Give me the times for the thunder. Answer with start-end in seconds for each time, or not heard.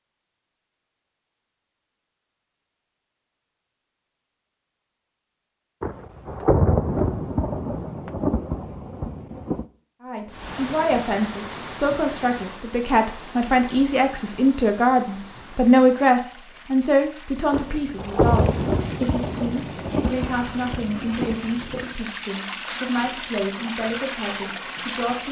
5.8-9.7, 17.5-21.9.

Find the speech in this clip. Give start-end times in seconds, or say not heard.
10.0-25.2.